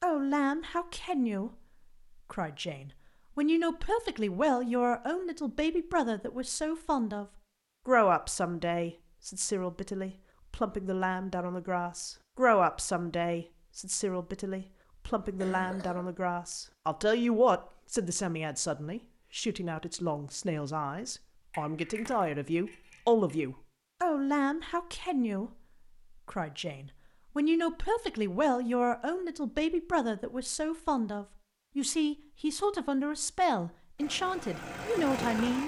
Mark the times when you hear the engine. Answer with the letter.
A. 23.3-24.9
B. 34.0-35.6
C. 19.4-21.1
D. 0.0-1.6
B.